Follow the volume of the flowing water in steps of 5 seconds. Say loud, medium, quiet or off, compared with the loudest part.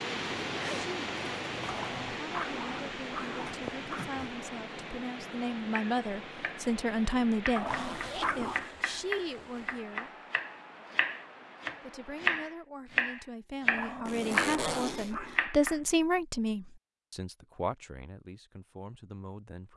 loud, medium, quiet, off.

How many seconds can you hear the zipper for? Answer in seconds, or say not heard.
4 s.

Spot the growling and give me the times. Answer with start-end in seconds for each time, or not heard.
1.6-4.4, 7.5-8.7, 13.7-15.4.